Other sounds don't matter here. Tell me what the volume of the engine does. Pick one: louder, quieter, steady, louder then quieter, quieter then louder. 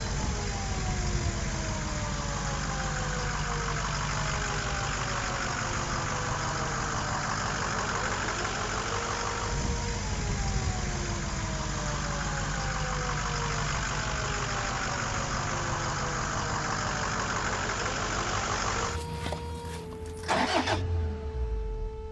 steady.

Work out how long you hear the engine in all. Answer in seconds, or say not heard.
22 s.